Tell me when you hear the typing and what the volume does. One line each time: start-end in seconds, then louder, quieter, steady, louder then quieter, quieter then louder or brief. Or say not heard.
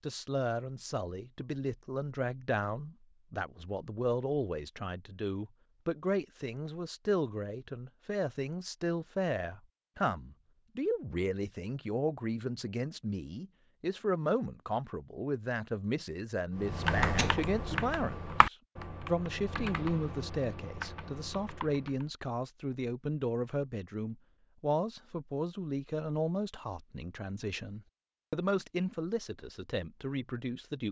16.6-22.1 quieter.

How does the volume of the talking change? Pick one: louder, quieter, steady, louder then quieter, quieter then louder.
steady.